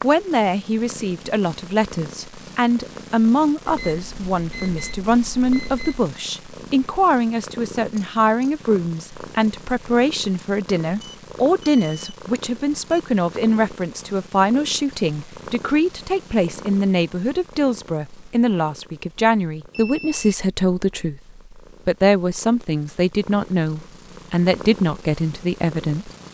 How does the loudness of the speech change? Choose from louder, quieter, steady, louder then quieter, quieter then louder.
steady.